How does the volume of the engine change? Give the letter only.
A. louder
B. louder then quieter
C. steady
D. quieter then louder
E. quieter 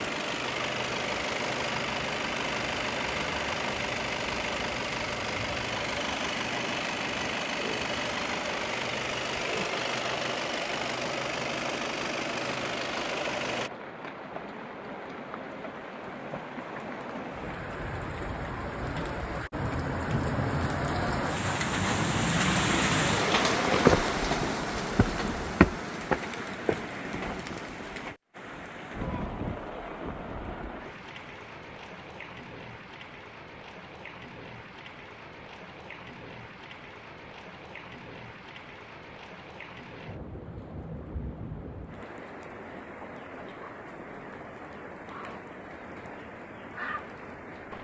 C.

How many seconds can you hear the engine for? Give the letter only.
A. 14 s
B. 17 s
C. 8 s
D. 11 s
A.